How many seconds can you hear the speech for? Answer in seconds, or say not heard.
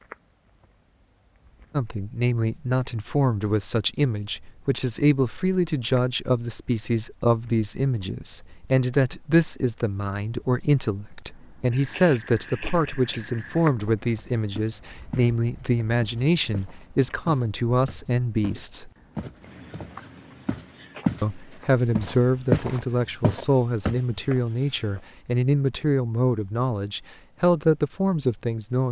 25 s.